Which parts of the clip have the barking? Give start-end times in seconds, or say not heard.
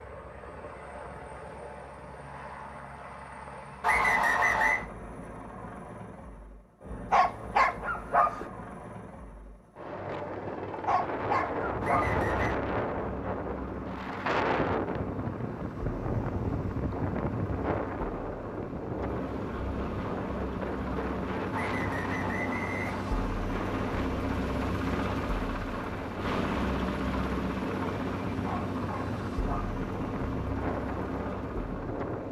7.1-8.5, 10.8-12.2, 28.4-29.8.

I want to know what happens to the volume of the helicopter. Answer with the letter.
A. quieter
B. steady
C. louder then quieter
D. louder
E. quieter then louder
D.